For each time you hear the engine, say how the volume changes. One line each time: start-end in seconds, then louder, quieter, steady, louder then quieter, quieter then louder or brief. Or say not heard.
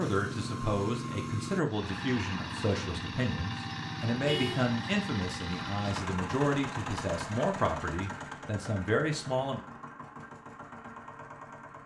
0.0-11.8 quieter.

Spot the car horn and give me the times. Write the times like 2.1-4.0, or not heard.
4.2-4.7.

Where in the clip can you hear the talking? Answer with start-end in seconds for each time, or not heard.
0.0-9.6.